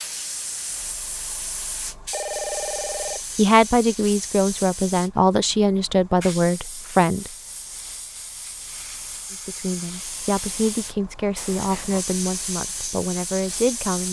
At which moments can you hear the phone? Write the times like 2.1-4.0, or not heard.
2.1-3.2.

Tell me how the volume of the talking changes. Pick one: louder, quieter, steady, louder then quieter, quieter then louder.
quieter.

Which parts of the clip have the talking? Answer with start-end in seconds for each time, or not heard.
3.4-7.3, 9.3-14.0.